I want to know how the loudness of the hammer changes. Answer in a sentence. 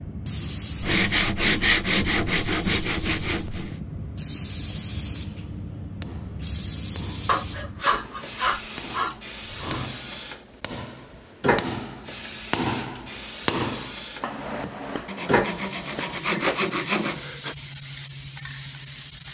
The loudness of the hammer goes up, then down.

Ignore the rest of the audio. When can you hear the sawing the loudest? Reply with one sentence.
The volume of the sawing peaks at 2 seconds.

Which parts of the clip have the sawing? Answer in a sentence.
The sawing can be heard from 0.8 to 3.8 s, from 7.2 to 9.9 s and from 15.1 to 17.6 s.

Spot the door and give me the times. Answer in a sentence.
The door can be heard from 16.3 to 16.8 s.